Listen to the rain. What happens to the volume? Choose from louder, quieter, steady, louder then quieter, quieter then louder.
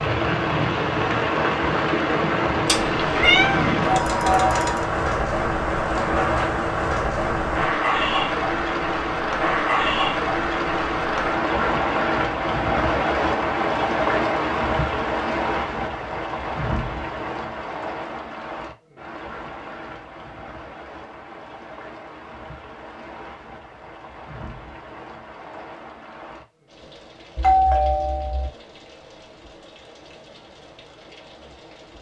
quieter.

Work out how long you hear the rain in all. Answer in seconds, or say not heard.
32 s.